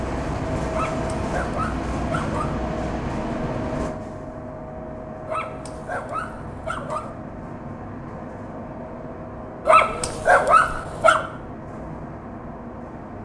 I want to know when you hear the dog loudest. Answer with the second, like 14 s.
10 s.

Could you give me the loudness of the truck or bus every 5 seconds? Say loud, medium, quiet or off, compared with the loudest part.
loud, medium, medium.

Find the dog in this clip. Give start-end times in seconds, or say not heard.
0.7-2.5, 5.2-7.1, 9.7-11.2.